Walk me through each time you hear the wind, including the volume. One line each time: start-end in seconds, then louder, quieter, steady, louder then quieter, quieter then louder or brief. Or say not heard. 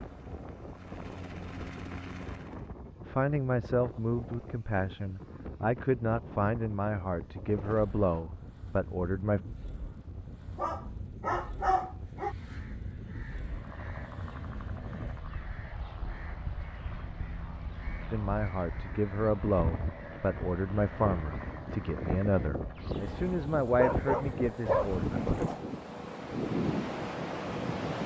0.0-28.0 louder.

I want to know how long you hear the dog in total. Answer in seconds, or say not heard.
4 s.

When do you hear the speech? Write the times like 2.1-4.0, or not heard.
3.0-9.4, 18.1-25.1.